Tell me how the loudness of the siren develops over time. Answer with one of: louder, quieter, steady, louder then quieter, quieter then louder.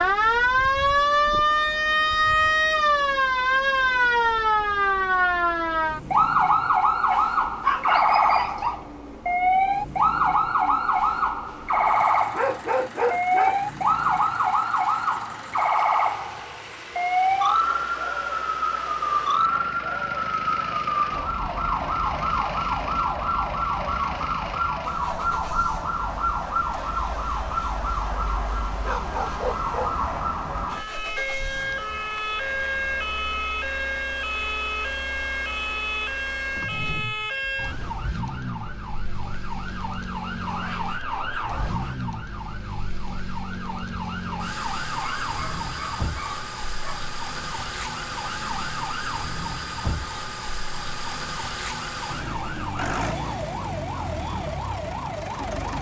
quieter.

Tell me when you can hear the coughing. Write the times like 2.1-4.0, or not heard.
not heard.